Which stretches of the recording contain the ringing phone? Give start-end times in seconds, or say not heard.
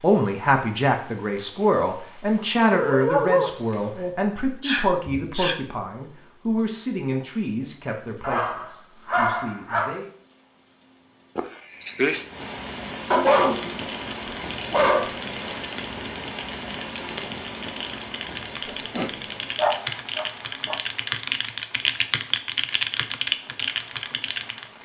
not heard.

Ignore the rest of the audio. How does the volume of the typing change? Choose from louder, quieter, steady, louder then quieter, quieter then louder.
louder.